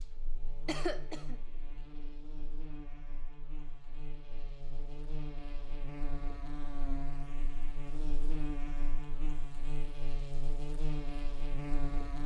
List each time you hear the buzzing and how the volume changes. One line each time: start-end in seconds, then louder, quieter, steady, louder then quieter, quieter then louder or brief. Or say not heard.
0.0-12.2 louder.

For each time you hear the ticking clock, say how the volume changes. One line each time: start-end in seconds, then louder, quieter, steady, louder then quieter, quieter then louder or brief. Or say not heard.
not heard.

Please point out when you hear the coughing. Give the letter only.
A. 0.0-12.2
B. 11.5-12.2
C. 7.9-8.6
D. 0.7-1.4
D.